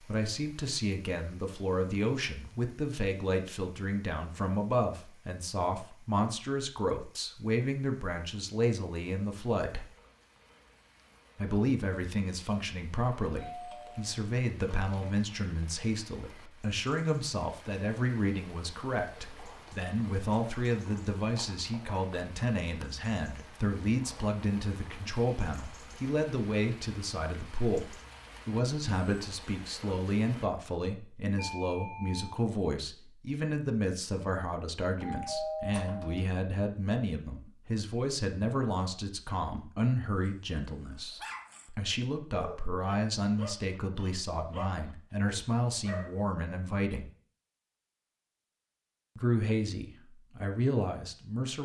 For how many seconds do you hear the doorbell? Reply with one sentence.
You can hear the doorbell for 4 seconds altogether.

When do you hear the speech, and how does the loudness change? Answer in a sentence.
You can hear the speech from 0.1 to 9.8 s, at a steady volume; from 11.3 to 47.1 s, at a steady volume; and briefly from 49.1 to 51.6 s.